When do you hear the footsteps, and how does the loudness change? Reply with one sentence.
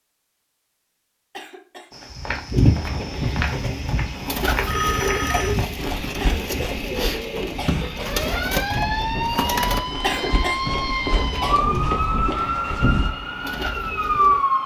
The footsteps can be heard from 1.9 to 13.1 s, getting quieter then louder.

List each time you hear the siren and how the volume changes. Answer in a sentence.
The siren can be heard from 8.0 to 14.6 s, at a steady volume.